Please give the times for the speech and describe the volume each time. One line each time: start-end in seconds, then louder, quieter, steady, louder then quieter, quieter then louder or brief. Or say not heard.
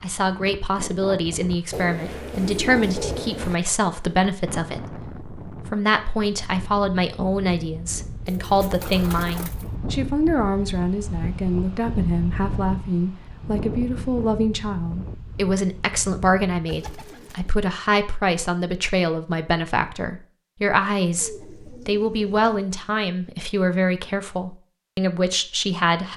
0.0-26.1 steady.